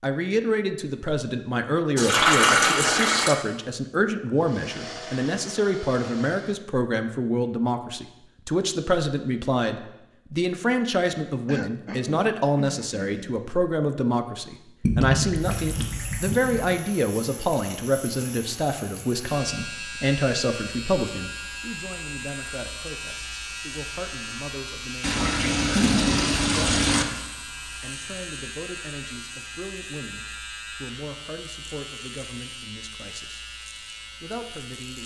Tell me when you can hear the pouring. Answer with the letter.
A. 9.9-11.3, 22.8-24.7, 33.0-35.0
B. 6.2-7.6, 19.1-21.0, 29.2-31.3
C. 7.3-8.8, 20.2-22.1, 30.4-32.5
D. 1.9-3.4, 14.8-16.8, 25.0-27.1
D.